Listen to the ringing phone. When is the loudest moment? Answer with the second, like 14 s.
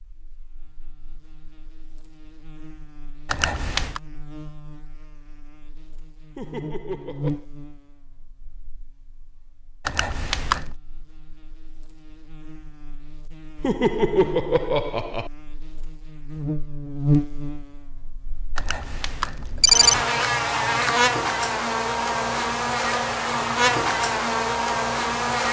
20 s.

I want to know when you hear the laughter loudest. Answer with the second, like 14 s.
14 s.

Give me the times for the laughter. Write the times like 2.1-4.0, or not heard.
6.3-7.5, 13.6-15.3.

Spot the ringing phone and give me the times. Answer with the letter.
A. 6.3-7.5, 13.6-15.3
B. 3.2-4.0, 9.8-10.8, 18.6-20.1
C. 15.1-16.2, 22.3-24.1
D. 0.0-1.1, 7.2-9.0
B.